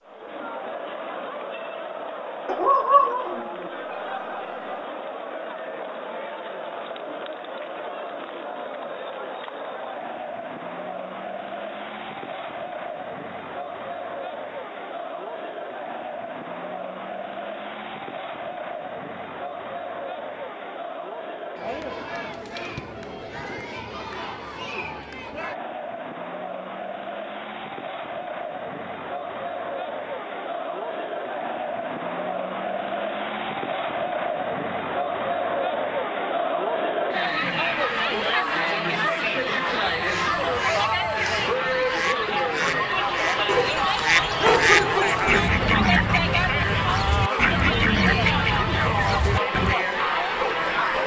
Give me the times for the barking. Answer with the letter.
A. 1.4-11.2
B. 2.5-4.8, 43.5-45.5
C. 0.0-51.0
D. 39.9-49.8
B.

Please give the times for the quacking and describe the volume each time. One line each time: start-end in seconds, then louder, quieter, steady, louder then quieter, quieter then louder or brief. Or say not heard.
39.9-49.8 louder.